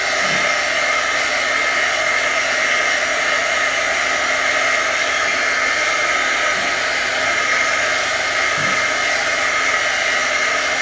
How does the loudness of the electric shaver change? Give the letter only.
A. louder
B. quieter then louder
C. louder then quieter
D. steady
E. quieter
D.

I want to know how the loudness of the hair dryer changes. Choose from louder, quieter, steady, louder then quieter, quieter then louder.
steady.